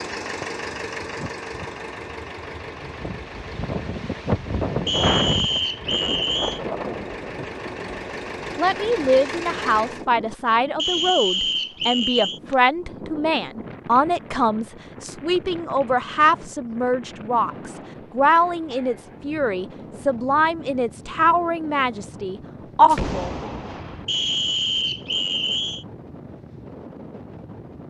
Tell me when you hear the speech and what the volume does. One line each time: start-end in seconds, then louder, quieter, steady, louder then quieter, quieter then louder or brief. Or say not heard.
8.6-23.4 steady.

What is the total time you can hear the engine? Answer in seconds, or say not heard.
10 s.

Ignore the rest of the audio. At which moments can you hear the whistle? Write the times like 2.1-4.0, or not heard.
4.8-6.6, 10.8-12.4, 24.1-25.9.